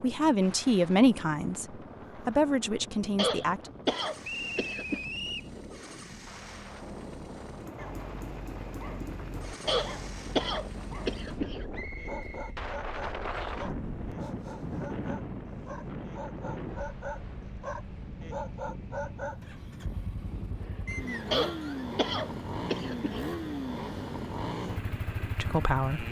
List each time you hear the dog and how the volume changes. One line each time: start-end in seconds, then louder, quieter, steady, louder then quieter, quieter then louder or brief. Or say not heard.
7.8-19.4 louder.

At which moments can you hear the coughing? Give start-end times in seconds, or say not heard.
3.1-5.0, 9.7-11.7, 21.3-23.3.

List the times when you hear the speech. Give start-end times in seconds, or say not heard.
0.0-3.7, 25.4-26.0.